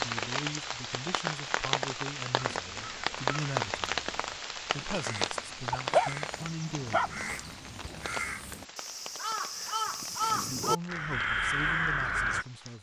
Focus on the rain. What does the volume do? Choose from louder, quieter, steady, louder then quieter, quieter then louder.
quieter.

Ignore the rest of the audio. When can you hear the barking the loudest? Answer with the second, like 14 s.
6 s.